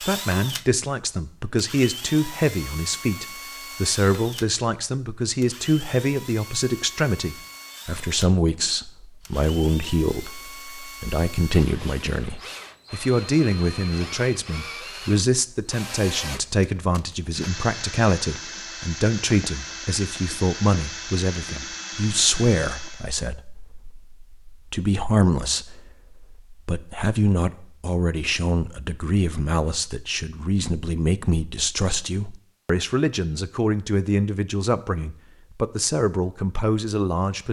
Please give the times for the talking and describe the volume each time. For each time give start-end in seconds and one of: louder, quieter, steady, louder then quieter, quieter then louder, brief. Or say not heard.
0.1-37.4 steady.